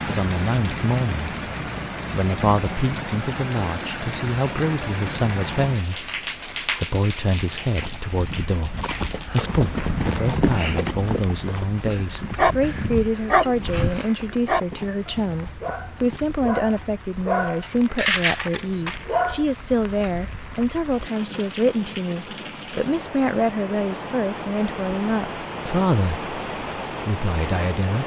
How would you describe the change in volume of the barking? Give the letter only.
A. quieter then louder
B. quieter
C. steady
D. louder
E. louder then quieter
A.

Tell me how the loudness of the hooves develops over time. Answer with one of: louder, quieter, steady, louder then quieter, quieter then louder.
louder then quieter.